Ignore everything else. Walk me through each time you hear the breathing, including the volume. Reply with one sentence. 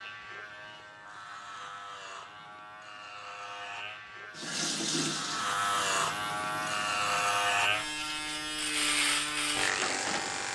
You can't hear the breathing here.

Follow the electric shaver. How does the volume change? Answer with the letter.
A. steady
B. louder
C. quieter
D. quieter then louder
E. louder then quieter
B.